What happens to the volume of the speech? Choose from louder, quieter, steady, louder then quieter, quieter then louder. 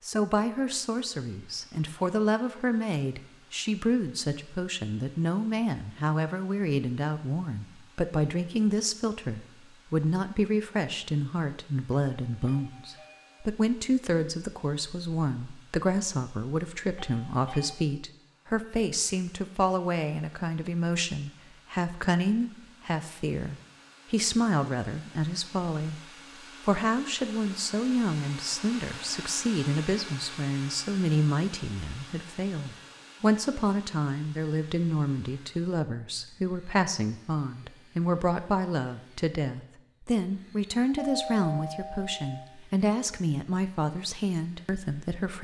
steady.